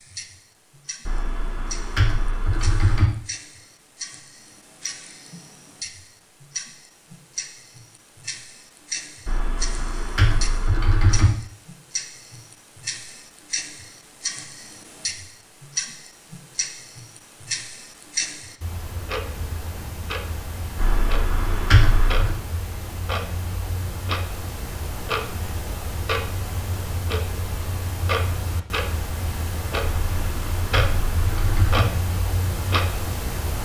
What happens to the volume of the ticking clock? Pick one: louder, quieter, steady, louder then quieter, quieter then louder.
louder.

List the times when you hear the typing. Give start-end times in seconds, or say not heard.
1.1-3.0, 9.2-11.3, 20.8-22.4, 29.8-31.9.